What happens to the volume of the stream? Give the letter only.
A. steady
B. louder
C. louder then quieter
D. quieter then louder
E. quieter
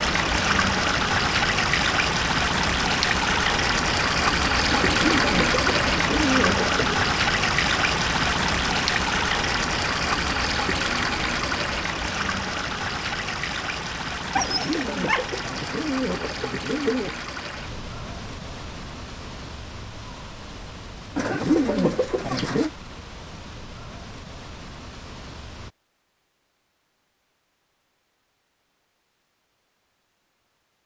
E.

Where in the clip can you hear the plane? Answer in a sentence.
The plane can't be heard in this clip.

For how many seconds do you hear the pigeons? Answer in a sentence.
You can hear the pigeons for 7 seconds altogether.